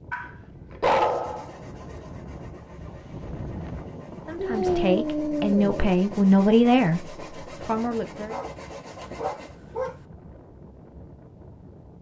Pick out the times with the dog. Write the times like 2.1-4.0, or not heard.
0.1-2.0, 4.3-5.9, 8.3-9.9.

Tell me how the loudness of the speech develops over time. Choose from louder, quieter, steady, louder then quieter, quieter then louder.
louder then quieter.